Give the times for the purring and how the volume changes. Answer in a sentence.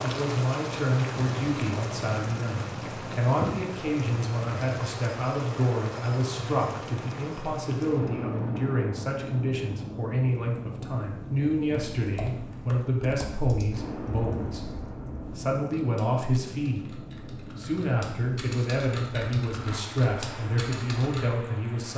The purring can't be heard in this clip.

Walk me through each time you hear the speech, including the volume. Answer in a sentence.
The speech can be heard from 0.0 to 21.9 s, at a steady volume.